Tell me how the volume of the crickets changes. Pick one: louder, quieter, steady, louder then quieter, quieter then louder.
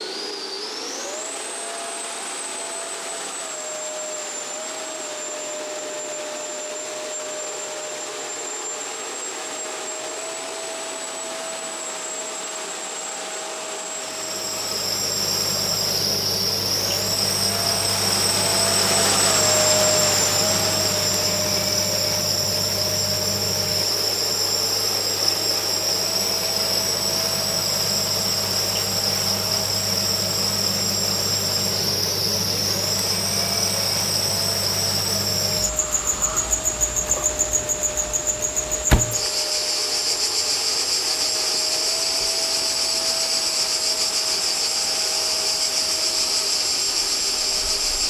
steady.